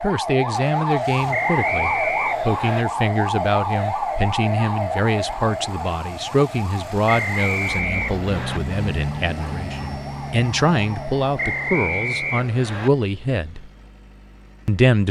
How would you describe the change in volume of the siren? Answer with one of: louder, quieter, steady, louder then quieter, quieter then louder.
quieter.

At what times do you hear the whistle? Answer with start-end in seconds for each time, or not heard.
1.3-2.9, 7.0-8.6, 11.3-12.9.